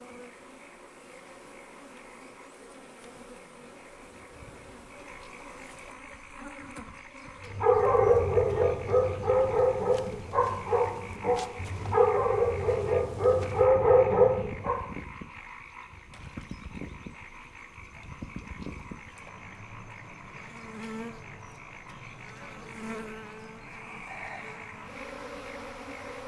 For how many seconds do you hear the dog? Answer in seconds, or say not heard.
7 s.